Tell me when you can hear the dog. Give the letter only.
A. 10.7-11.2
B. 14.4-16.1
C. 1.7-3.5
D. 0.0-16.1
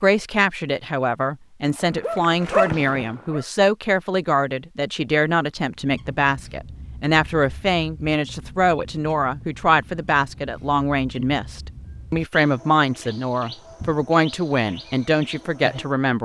C.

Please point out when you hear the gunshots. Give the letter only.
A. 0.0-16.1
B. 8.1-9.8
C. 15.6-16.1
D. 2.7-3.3
D.